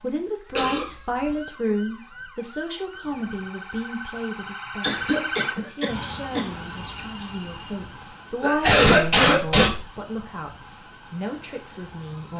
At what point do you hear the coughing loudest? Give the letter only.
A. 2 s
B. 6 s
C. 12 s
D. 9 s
D.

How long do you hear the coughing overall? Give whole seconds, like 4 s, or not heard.
4 s.